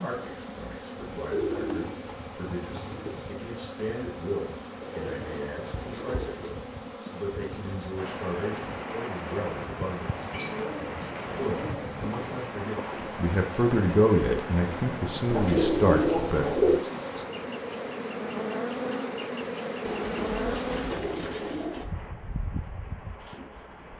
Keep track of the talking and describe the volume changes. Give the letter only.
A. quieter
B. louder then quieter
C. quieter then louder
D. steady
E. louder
E.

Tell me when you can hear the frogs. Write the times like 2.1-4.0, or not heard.
not heard.